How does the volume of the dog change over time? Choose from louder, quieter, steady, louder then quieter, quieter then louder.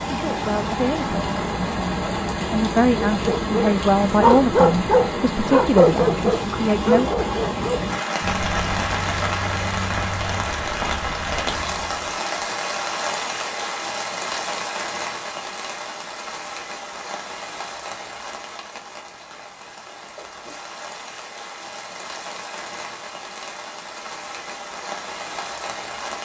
quieter.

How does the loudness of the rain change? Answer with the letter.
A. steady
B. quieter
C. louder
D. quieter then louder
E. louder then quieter
B.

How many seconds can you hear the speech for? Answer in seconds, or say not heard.
7 s.